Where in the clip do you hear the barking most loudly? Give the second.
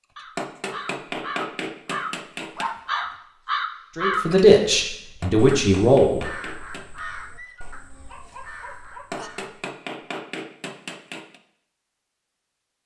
3 s.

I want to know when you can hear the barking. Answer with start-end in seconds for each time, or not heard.
2.5-3.1, 7.3-9.3.